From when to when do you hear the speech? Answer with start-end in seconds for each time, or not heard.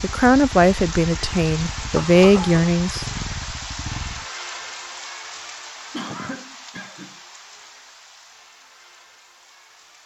0.0-3.0.